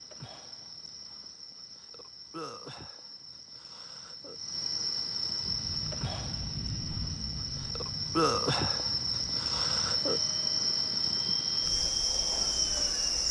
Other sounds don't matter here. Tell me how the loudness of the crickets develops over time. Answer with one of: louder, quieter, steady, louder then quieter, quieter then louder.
louder.